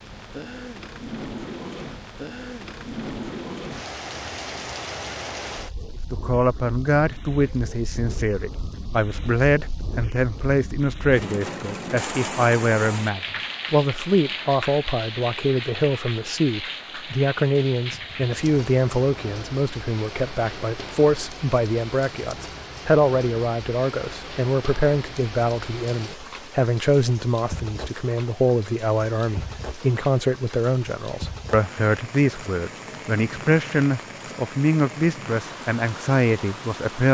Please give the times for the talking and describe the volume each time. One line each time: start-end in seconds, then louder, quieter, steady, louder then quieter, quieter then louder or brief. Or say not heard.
6.1-37.0 steady.